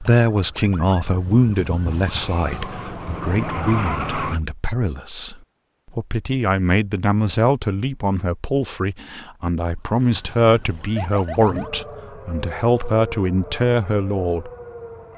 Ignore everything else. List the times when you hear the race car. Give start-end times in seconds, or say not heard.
2.1-4.4.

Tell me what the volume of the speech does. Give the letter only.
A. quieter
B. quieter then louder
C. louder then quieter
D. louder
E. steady
B.